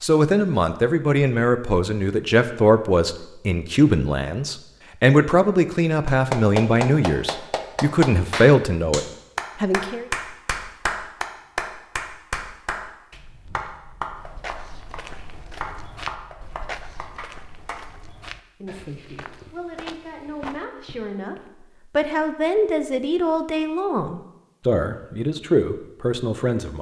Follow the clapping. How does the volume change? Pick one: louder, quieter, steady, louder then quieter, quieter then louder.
quieter.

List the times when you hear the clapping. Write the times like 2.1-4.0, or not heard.
6.0-17.8.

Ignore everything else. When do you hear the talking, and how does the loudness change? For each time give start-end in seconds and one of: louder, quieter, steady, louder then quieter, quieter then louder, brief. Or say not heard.
0.0-10.1 steady
18.6-26.7 louder.